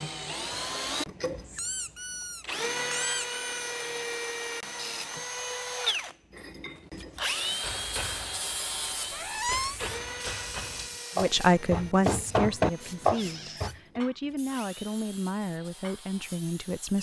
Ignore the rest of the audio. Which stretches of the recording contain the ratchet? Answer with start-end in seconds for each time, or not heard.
not heard.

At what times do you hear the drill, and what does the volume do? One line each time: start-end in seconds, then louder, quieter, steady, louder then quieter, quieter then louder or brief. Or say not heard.
0.0-16.9 quieter.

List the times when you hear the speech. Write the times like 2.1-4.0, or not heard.
11.2-16.9.